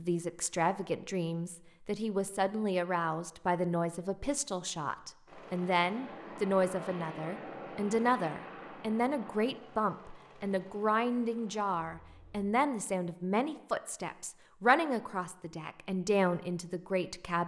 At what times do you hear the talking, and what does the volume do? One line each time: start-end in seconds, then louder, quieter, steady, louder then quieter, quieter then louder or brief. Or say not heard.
0.0-17.4 steady.